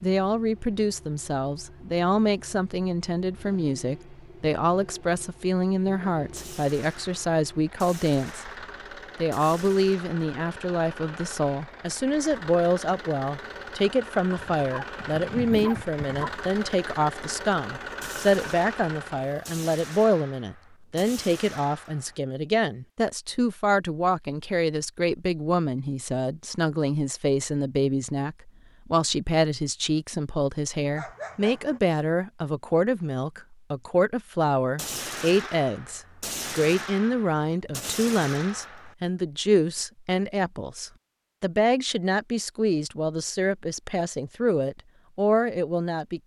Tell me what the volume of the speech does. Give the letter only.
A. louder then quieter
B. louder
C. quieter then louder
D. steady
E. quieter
D.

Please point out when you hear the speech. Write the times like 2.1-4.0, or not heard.
0.0-8.5, 9.2-46.2.